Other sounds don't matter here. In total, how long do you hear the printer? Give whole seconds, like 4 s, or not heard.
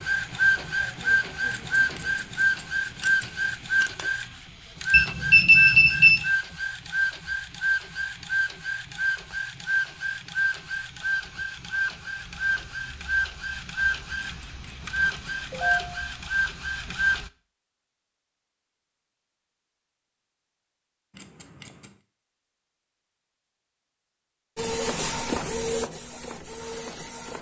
20 s.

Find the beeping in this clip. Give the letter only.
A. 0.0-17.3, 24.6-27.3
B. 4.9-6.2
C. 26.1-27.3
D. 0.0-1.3
B.